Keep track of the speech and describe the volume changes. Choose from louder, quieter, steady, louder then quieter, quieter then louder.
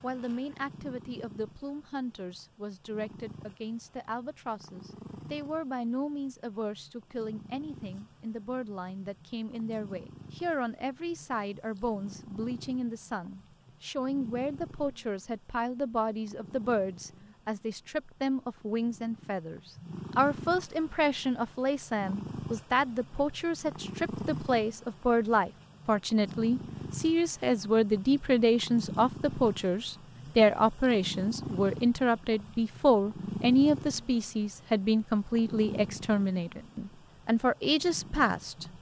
louder.